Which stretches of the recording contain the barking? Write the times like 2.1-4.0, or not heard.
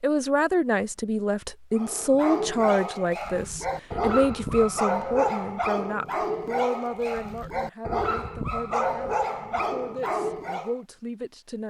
1.8-10.8.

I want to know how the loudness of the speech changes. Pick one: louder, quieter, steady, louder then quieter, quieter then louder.
quieter.